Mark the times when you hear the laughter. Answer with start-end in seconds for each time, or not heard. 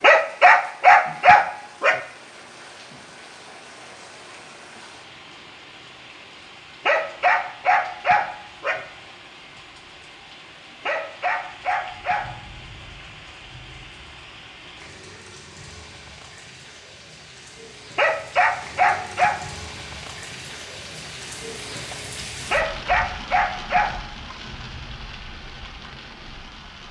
not heard.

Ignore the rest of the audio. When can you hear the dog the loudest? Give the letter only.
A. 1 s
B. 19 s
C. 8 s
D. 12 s
A.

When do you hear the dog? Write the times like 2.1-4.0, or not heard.
0.0-2.0, 6.8-8.8, 10.8-12.3, 17.9-19.4, 22.5-23.9.